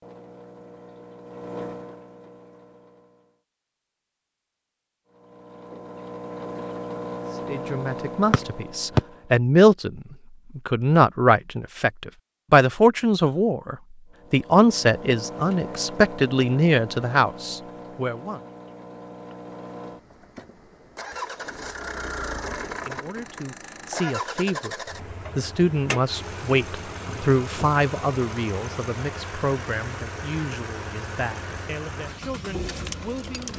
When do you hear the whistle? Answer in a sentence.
The whistle can be heard from 8.3 to 9.0 s.